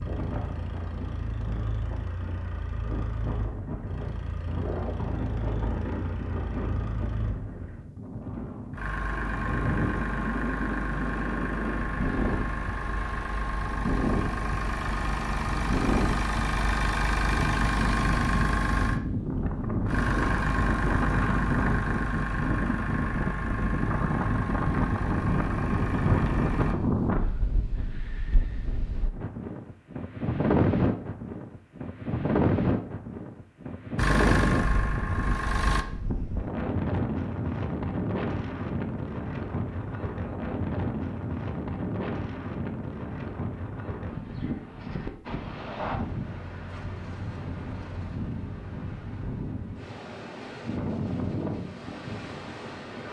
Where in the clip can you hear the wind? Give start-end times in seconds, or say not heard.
0.0-53.0.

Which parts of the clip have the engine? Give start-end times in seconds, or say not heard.
0.0-26.8, 34.0-35.9.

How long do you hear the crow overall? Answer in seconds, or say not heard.
not heard.